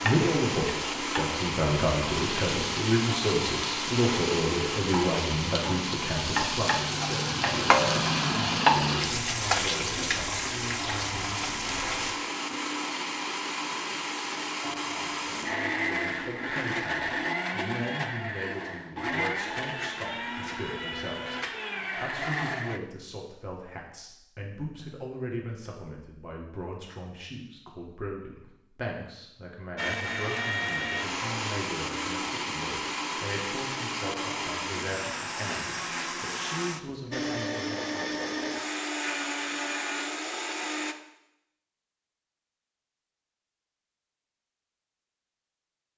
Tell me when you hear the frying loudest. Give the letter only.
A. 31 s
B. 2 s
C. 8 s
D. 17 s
C.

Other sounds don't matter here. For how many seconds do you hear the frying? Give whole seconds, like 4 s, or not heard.
12 s.